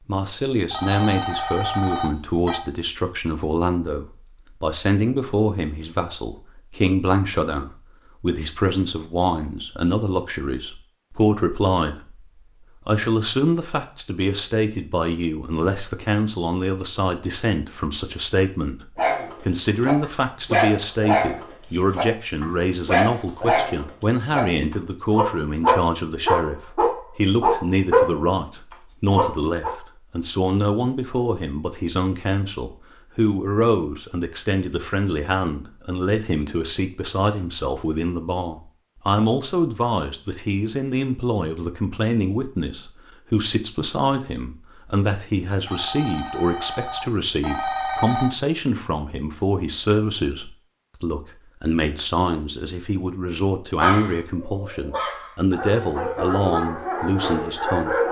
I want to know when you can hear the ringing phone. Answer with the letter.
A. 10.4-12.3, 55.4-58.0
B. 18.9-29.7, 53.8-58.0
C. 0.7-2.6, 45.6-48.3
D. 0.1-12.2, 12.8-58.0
C.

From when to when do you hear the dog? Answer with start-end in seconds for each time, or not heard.
18.9-29.7, 53.8-58.0.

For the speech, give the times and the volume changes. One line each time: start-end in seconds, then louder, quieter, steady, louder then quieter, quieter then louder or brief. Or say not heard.
0.1-12.2 steady
12.8-58.0 steady.